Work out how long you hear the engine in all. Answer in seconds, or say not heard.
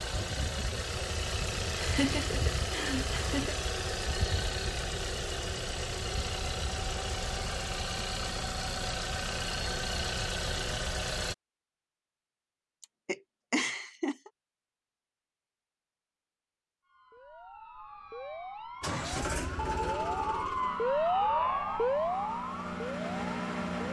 16 s.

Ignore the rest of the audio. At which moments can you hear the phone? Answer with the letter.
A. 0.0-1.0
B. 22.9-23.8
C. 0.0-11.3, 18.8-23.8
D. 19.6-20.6
D.